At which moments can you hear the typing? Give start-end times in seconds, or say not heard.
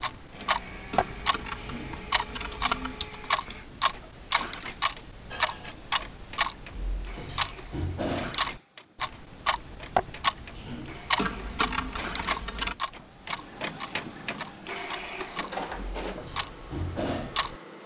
0.9-3.1, 11.2-12.8.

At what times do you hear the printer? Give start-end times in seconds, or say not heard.
0.0-17.8.